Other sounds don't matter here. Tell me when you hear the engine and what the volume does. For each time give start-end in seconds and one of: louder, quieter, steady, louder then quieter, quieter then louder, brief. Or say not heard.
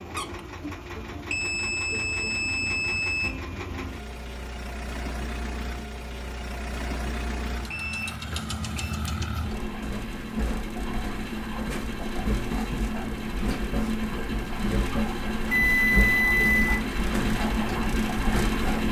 0.0-18.8 louder.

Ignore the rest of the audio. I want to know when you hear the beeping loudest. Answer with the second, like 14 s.
16 s.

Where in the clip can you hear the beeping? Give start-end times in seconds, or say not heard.
1.3-3.3, 7.7-8.9, 15.5-16.8.